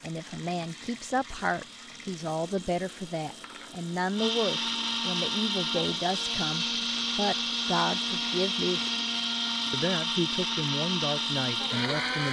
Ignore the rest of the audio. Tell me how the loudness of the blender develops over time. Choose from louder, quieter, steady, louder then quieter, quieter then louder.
louder.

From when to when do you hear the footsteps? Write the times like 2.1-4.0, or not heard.
not heard.